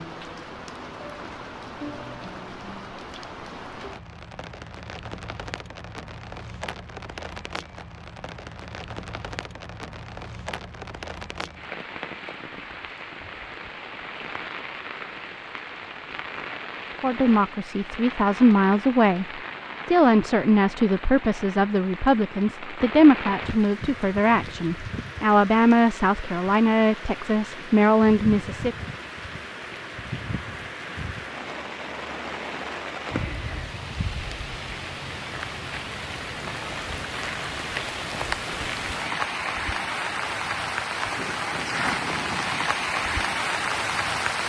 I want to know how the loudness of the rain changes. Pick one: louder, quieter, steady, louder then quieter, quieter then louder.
louder.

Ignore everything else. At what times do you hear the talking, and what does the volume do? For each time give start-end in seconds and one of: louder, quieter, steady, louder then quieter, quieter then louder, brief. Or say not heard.
17.0-28.8 steady.